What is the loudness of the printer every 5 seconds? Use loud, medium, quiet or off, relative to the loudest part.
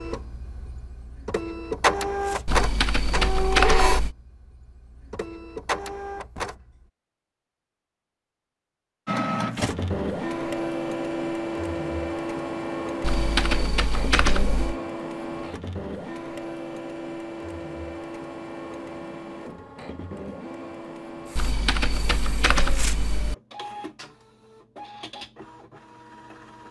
loud, loud, loud, medium, quiet, quiet.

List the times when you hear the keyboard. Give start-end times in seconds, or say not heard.
2.5-4.2, 13.0-14.8, 21.4-23.4.